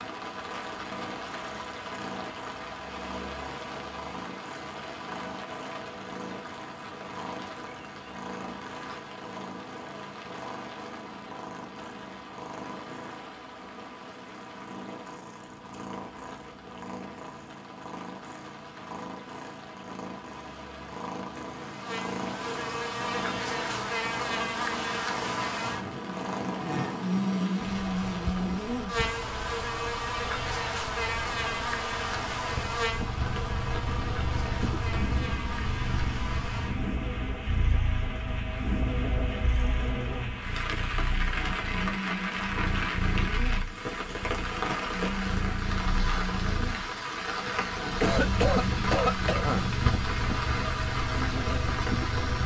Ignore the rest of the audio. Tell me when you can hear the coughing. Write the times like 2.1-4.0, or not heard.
48.0-49.6.